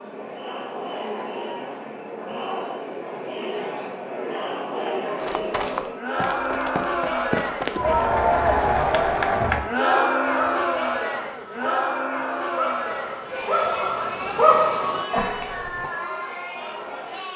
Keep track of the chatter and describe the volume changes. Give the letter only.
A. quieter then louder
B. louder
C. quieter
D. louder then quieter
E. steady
D.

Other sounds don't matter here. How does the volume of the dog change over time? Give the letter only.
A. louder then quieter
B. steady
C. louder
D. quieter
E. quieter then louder
C.